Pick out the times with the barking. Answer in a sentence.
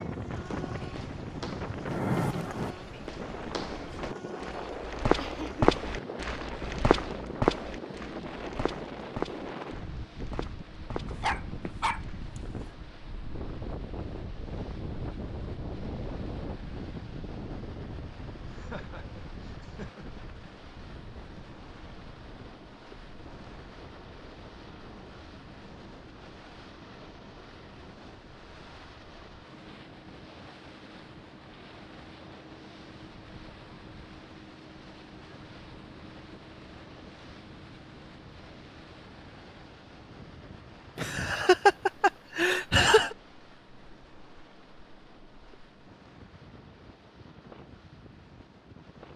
You can hear the barking from 11.1 to 12.4 s.